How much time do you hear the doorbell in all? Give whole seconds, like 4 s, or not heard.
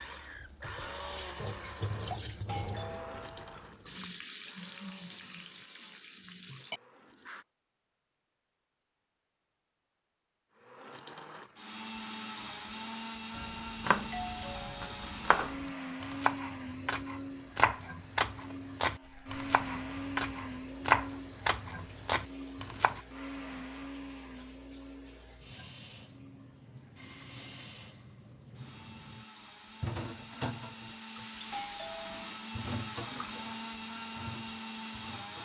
4 s.